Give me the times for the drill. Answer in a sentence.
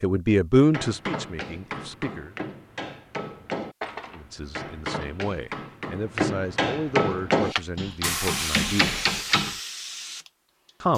You can't hear the drill here.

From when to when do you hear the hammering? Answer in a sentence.
The hammering can be heard from 0.7 to 9.6 s.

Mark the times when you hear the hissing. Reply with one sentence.
The hissing can be heard from 7.4 to 10.9 s.